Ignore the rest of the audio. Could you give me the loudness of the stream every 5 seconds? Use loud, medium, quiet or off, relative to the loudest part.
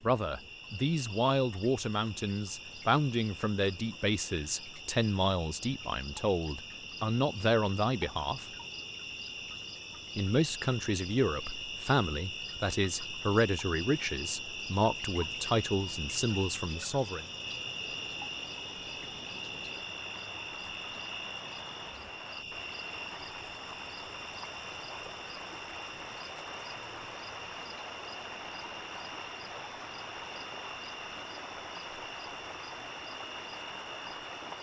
off, off, off, medium, loud, loud, loud.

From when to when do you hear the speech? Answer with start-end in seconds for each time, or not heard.
0.0-8.4, 10.2-17.2.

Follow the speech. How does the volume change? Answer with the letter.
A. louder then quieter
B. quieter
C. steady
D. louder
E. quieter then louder
C.